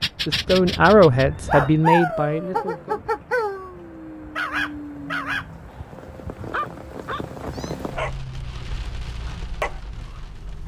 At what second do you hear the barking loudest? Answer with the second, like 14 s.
2 s.